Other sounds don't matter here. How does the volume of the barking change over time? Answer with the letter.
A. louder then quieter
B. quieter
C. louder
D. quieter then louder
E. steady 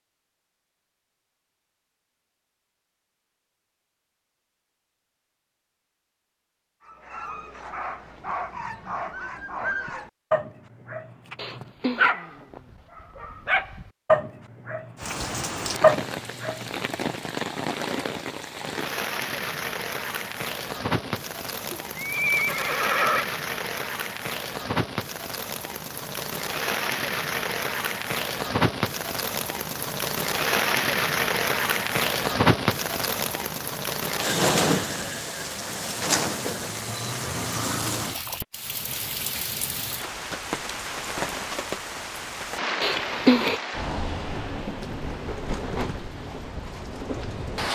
C.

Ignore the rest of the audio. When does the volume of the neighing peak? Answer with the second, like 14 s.
43 s.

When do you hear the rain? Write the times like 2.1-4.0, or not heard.
14.9-47.6.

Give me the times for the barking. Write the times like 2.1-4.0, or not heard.
6.8-17.1.